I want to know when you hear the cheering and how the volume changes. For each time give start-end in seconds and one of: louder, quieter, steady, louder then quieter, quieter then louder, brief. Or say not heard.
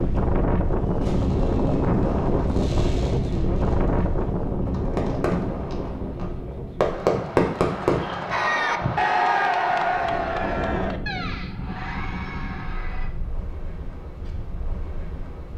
8.3-13.1 quieter.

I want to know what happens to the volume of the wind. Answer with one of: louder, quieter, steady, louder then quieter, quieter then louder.
quieter.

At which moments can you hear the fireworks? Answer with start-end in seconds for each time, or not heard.
0.7-8.5.